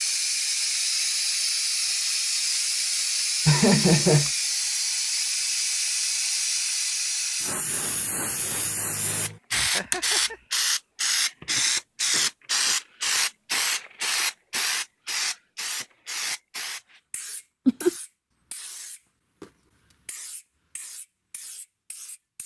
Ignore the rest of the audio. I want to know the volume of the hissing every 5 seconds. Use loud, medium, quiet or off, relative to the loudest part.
loud, loud, loud, medium, quiet.